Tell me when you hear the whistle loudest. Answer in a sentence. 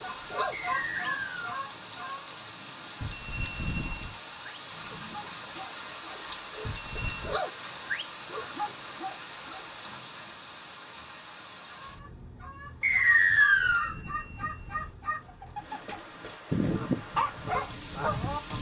The volume of the whistle peaks at 13 seconds.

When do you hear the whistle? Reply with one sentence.
You can hear the whistle from 0.5 to 1.4 s and from 12.8 to 13.9 s.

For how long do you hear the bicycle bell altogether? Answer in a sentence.
You can hear the bicycle bell for 4 seconds altogether.